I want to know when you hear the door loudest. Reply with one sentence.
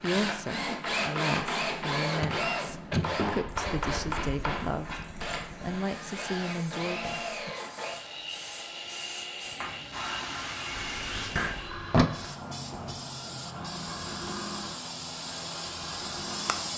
The loudest moment of the door is at 12 seconds.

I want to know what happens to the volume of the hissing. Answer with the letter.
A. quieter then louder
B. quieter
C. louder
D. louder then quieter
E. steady
C.